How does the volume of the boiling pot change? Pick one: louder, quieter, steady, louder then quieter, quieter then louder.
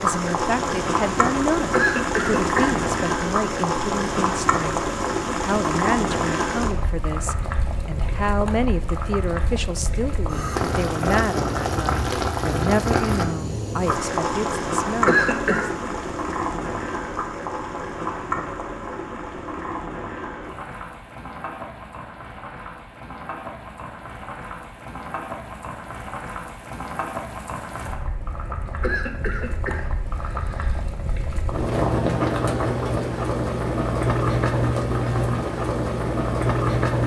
quieter then louder.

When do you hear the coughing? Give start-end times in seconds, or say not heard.
1.7-2.8, 15.1-15.7, 28.8-30.8.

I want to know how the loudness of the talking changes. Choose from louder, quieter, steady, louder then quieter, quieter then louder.
steady.